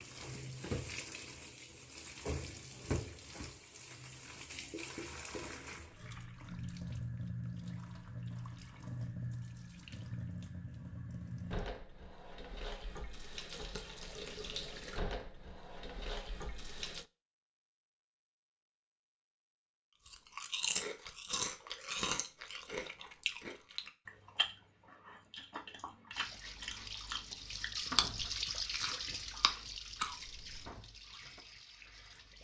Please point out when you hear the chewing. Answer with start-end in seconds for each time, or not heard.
20.0-30.7.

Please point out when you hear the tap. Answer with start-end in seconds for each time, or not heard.
0.0-17.1, 26.1-32.3.